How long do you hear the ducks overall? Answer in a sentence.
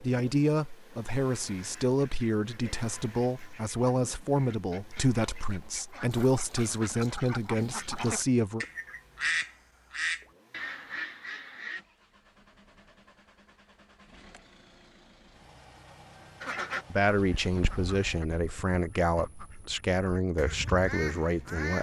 You can hear the ducks for 16 seconds altogether.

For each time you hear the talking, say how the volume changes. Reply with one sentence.
The talking can be heard from 0.0 to 8.7 s, at a steady volume; and from 16.9 to 21.7 s, at a steady volume.